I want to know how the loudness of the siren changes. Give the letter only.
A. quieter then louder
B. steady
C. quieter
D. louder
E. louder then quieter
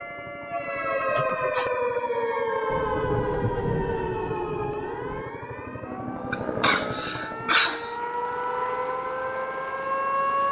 A.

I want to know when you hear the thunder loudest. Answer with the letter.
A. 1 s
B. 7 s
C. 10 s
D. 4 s
D.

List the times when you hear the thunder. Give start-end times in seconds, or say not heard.
2.6-5.2.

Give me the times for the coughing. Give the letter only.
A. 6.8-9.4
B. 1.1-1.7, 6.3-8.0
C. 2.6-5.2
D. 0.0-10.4
B.